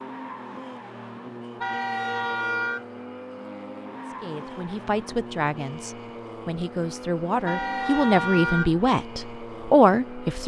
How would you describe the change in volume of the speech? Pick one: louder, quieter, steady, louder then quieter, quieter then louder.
quieter then louder.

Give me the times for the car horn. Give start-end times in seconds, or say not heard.
1.6-2.9, 7.5-8.8.